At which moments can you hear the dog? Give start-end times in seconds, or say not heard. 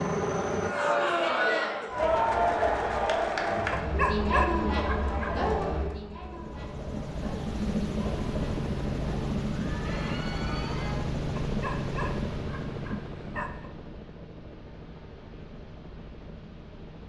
3.8-5.5, 11.4-13.7.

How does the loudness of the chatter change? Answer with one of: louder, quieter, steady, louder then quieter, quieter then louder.
quieter.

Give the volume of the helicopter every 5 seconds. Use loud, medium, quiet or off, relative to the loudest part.
loud, loud, loud, quiet.